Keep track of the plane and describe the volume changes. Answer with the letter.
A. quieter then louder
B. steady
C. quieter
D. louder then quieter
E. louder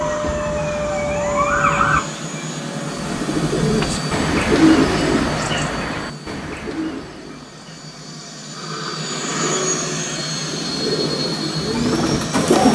A.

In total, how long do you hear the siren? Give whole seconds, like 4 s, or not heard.
2 s.